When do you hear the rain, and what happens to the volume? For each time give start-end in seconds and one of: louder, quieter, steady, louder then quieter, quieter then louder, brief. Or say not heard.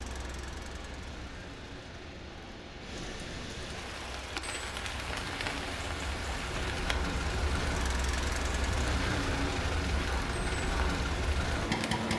0.0-12.1 louder.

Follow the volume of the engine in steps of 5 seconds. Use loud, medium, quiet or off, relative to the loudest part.
quiet, loud, loud.